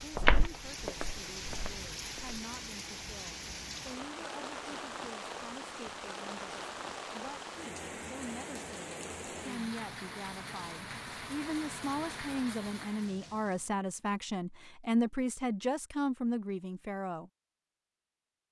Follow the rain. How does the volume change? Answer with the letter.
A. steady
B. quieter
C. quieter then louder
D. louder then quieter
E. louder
A.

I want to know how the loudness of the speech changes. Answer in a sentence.
The volume of the speech goes up.